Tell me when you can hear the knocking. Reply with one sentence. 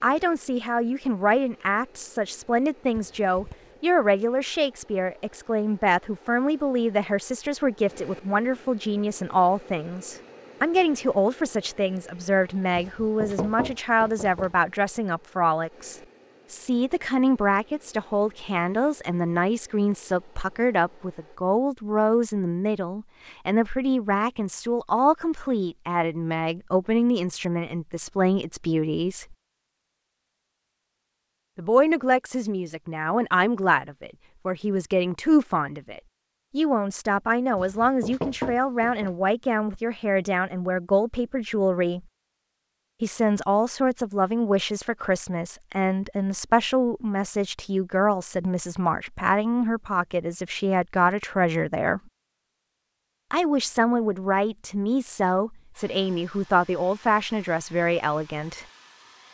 The knocking can be heard from 12.8 to 14.5 s and from 37.5 to 39.1 s.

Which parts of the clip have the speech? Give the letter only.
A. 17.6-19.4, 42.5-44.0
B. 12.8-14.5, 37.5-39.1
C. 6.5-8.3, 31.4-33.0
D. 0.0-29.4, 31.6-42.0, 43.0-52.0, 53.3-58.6
D.